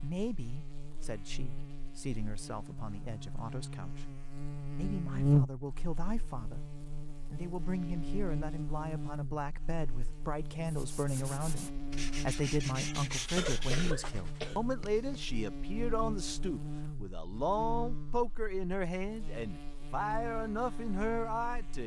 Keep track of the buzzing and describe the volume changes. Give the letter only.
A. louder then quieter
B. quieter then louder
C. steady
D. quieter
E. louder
A.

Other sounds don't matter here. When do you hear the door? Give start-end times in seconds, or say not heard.
not heard.